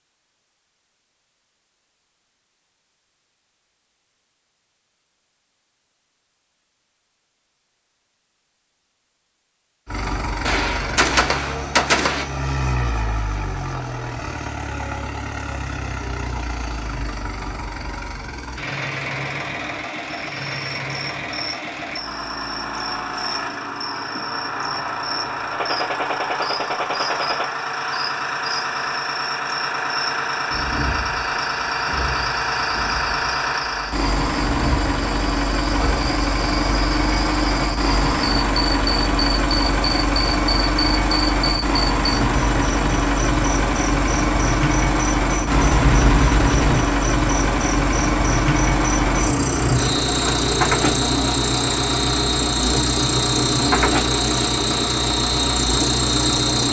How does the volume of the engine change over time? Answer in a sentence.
The loudness of the engine goes up.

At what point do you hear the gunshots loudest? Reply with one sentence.
The loudest moment of the gunshots is at 12 seconds.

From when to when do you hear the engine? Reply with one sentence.
The engine can be heard from 9.8 to 56.6 s.